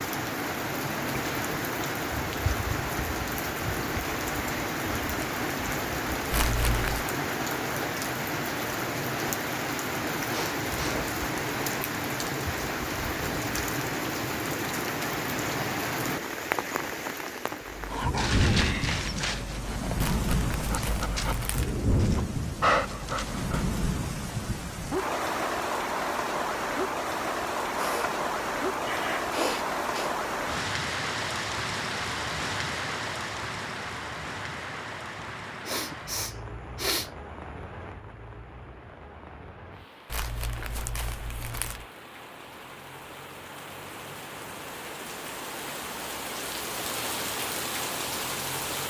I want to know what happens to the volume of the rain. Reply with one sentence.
The loudness of the rain goes down.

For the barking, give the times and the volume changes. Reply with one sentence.
The barking can be heard from 17.6 to 23.8 s, getting quieter then louder.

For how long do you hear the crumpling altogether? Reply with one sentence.
The crumpling can be heard for 4 seconds in total.